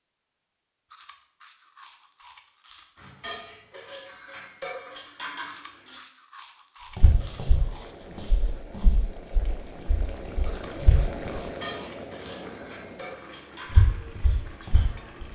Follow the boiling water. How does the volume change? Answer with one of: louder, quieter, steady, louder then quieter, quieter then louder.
louder then quieter.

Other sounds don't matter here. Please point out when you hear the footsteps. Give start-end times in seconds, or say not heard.
7.0-11.4, 13.7-15.3.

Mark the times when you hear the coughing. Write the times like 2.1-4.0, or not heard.
not heard.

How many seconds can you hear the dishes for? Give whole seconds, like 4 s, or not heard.
7 s.